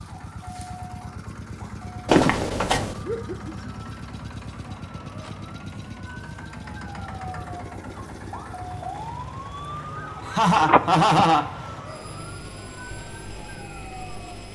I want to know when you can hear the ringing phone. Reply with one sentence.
The ringing phone can be heard from 2.0 to 3.0 s and from 10.5 to 11.2 s.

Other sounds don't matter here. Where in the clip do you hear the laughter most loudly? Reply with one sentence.
The volume of the laughter peaks at 11 seconds.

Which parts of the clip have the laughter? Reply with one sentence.
You can hear the laughter from 3.0 to 3.9 s and from 10.2 to 11.7 s.